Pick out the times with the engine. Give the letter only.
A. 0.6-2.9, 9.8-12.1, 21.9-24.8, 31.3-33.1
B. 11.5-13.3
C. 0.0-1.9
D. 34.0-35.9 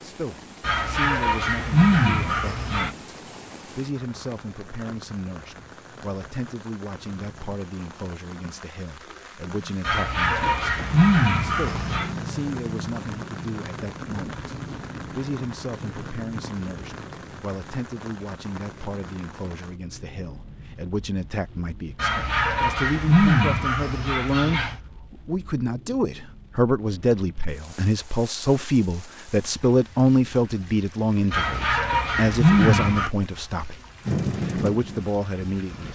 D.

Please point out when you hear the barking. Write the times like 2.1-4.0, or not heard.
0.6-2.9, 9.8-12.1, 21.9-24.8, 31.3-33.1.